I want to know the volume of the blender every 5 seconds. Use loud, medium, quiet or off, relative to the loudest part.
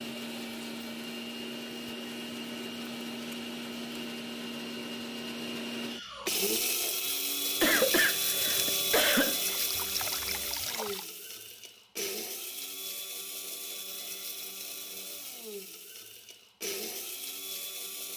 medium, loud, medium, medium.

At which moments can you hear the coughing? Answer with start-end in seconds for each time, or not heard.
7.6-9.4.